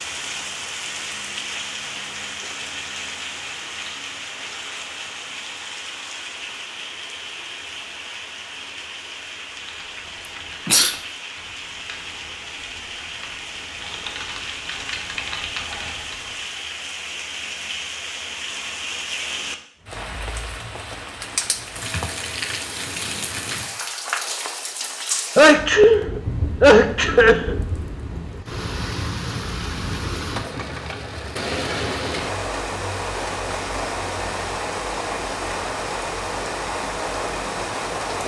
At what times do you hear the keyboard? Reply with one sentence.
You can hear the keyboard from 9.5 to 16.4 s.